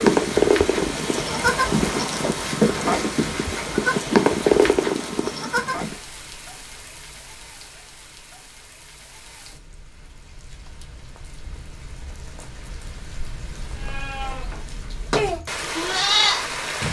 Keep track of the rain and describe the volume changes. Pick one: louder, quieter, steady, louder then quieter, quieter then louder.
quieter then louder.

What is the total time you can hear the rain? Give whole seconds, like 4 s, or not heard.
17 s.